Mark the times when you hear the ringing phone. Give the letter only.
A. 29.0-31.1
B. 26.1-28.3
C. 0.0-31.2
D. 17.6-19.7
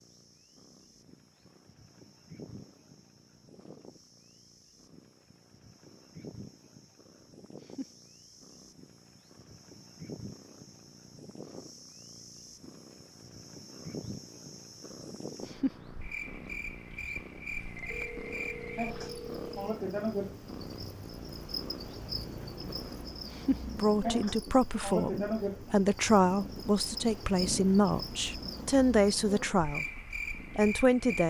D.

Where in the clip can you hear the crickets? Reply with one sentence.
The crickets can be heard from 0.0 to 31.2 s.